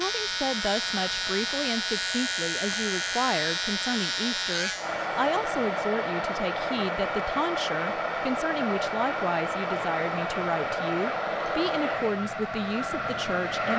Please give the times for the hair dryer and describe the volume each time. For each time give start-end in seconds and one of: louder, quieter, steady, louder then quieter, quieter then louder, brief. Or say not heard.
0.0-13.7 louder.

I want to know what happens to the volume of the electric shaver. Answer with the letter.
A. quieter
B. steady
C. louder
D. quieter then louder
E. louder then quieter
B.